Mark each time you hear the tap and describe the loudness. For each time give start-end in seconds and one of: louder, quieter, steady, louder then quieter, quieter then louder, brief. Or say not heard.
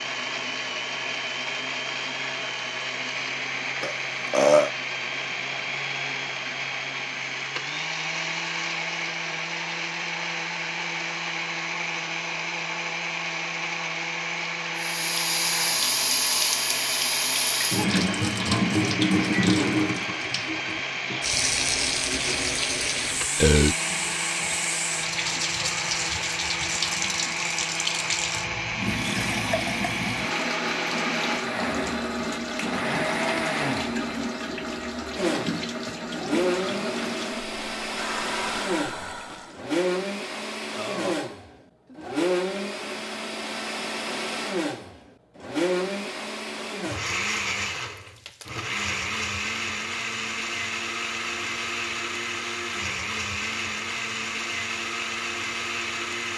14.8-39.6 quieter.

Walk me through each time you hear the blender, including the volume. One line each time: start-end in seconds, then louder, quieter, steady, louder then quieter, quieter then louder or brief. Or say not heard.
0.0-56.3 steady.